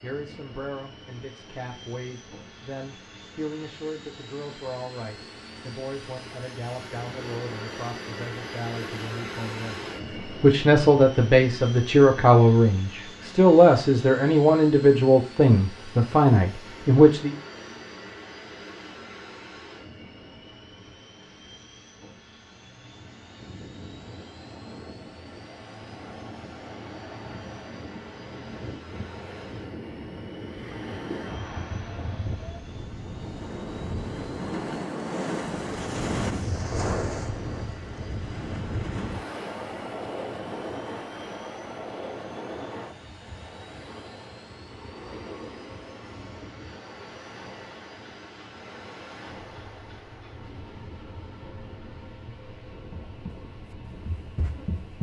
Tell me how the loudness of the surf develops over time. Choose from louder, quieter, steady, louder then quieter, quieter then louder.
louder then quieter.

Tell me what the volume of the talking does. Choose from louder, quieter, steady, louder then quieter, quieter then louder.
louder.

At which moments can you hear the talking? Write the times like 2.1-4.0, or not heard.
0.0-17.4.